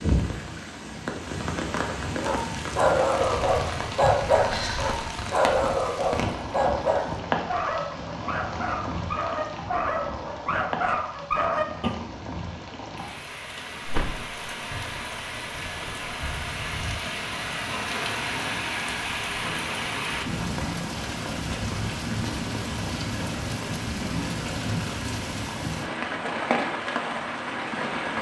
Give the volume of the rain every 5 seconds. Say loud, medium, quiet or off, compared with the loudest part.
loud, loud, medium, loud, loud, loud.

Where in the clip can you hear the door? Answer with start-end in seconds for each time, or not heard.
13.8-14.3.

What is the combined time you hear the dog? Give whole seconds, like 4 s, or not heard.
10 s.